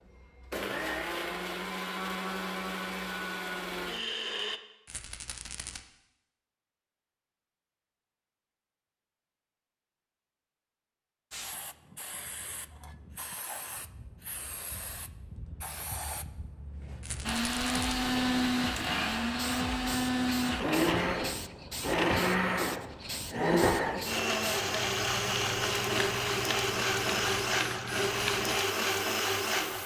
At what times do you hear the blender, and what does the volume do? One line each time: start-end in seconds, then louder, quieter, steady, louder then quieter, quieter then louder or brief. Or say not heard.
0.1-4.6 steady
17.2-29.8 steady.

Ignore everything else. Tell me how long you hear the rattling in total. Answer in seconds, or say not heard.
2 s.